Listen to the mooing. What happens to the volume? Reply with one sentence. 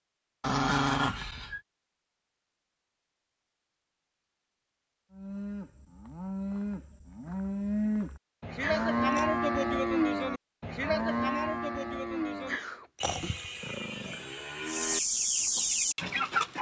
The loudness of the mooing goes up, then down.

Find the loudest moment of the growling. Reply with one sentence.
The loudest moment of the growling is at 1 second.